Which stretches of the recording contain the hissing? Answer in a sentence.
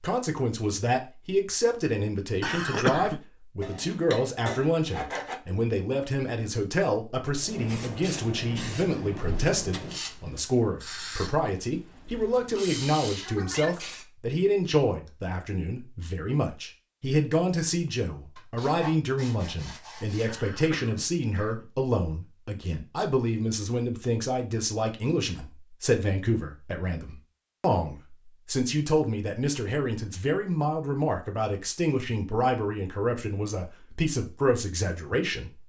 The hissing can be heard from 7.3 to 14.1 s.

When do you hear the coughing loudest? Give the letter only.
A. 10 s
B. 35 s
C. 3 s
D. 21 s
C.